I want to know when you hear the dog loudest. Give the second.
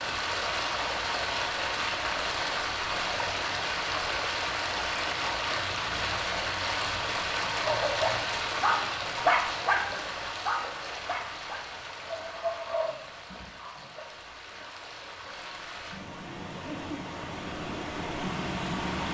9 s.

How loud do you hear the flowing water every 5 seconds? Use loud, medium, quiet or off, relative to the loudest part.
loud, loud, medium, medium.